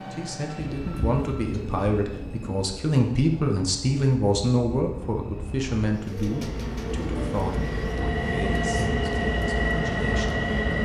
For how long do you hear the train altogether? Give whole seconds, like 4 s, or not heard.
11 s.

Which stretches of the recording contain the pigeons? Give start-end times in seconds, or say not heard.
0.6-2.6, 5.9-8.0.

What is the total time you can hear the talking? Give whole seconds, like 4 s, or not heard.
10 s.